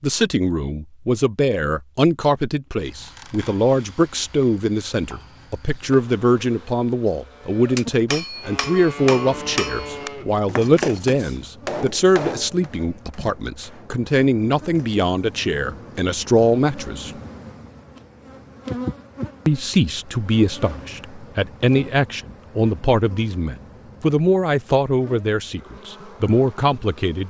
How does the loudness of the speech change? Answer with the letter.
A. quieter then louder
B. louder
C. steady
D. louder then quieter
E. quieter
C.